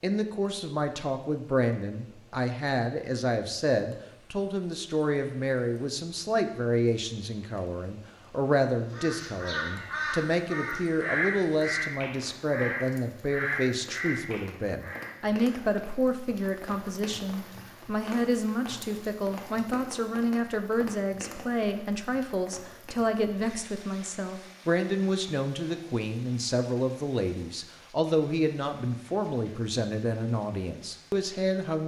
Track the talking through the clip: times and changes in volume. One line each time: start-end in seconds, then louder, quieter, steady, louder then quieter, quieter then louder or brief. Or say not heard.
0.0-31.8 steady.